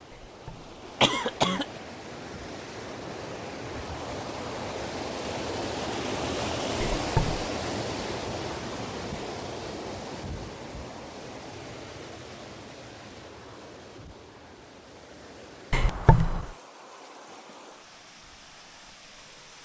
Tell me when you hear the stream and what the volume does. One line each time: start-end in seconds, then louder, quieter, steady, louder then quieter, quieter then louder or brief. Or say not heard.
0.0-19.6 louder then quieter.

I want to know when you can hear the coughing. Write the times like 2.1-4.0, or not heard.
0.1-1.8, 6.8-7.4, 15.7-16.5.